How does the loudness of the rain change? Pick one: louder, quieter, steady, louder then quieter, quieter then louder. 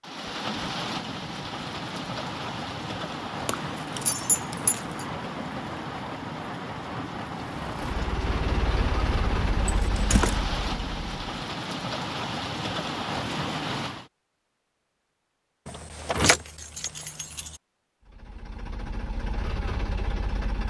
steady.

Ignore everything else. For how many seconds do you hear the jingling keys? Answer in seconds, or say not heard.
4 s.